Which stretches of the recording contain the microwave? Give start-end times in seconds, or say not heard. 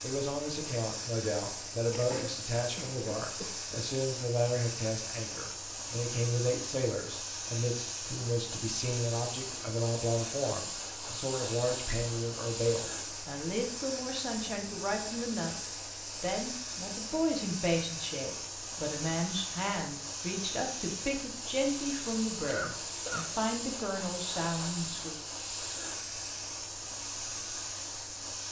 not heard.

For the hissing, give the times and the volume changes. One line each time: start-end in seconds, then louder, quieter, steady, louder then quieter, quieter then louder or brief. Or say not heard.
0.0-28.4 steady.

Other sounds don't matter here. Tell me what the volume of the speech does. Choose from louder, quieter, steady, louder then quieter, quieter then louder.
steady.